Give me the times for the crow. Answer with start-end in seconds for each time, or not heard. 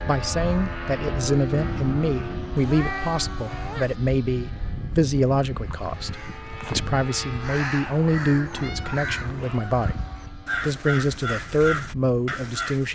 5.5-12.9.